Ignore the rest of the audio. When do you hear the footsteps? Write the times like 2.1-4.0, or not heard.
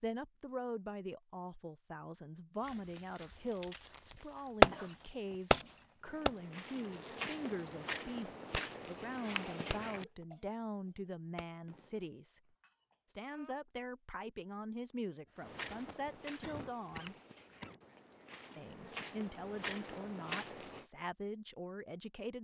2.6-10.1, 15.4-20.9.